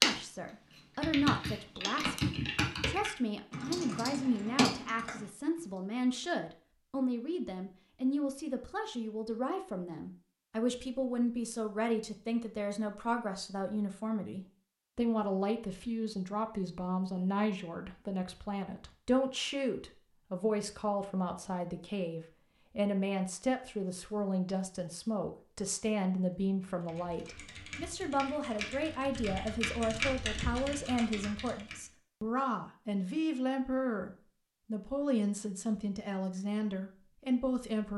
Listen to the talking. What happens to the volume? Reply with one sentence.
The loudness of the talking stays about the same.